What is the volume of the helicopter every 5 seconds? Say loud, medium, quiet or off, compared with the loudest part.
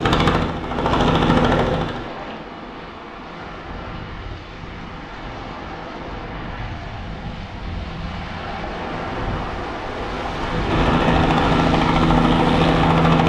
loud, off, loud.